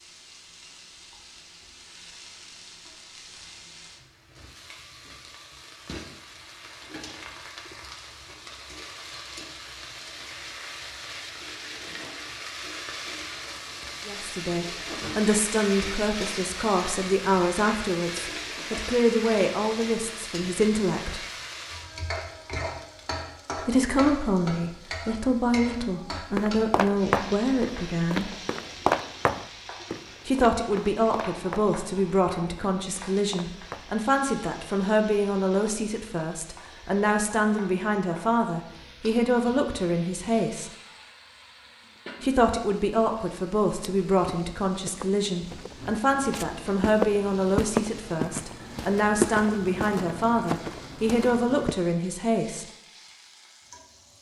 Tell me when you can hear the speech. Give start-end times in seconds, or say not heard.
14.1-21.2, 23.6-28.3, 30.2-40.7, 42.2-52.6.